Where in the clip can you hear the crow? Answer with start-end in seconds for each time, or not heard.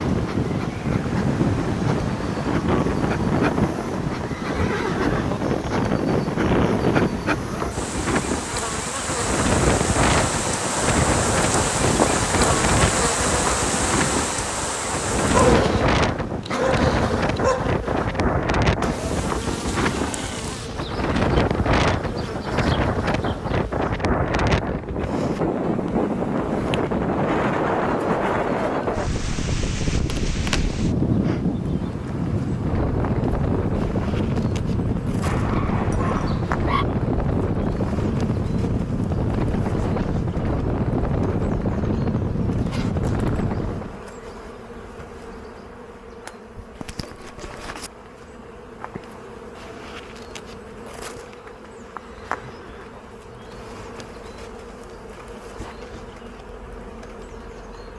not heard.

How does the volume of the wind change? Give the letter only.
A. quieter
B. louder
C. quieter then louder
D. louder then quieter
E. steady
E.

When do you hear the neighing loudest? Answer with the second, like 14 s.
5 s.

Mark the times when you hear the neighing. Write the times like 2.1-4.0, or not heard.
4.3-5.4, 19.4-20.9, 52.0-53.0.